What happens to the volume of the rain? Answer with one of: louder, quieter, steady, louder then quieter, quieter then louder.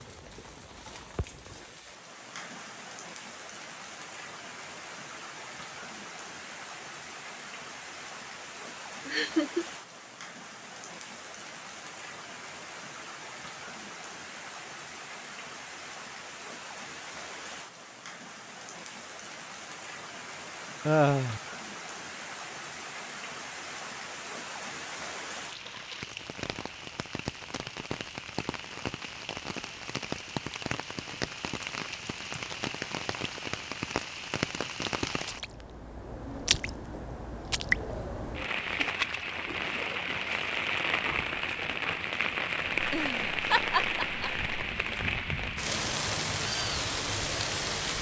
louder.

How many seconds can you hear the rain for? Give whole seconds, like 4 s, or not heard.
48 s.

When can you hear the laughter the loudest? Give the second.
21 s.